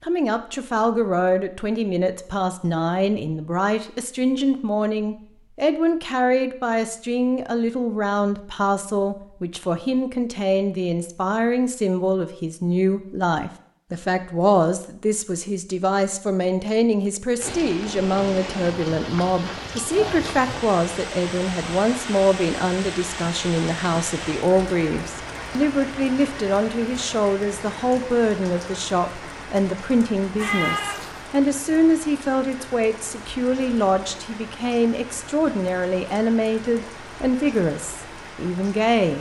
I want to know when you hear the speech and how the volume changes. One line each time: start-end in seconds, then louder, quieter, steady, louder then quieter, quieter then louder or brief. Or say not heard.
0.0-39.1 steady.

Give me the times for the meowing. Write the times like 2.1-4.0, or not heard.
30.4-31.2.